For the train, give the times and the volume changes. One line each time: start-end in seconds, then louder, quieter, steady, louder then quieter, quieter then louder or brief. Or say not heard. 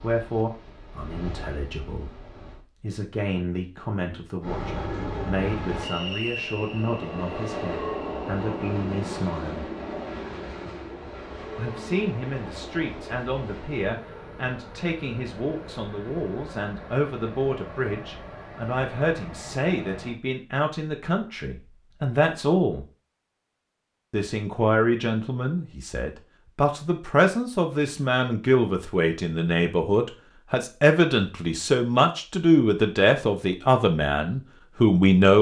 0.0-2.6 brief
4.4-20.1 quieter.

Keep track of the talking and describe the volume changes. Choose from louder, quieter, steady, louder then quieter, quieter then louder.
louder.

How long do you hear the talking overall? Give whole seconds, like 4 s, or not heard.
32 s.